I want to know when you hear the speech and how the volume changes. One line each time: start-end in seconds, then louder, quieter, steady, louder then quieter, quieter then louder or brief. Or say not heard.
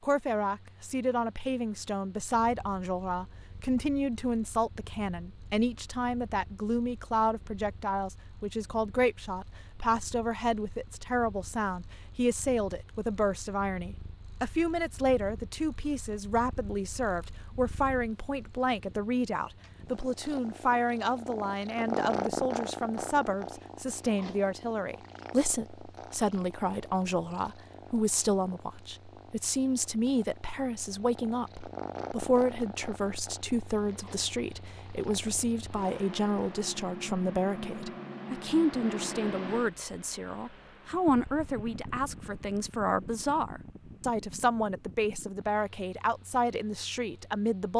0.0-47.7 steady.